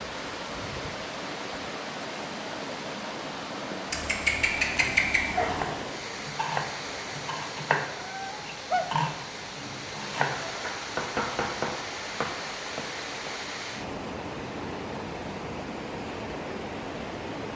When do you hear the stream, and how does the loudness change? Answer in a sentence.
The stream can be heard from 0.0 to 17.5 s, at a steady volume.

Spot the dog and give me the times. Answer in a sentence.
The dog can be heard from 3.9 to 5.8 s.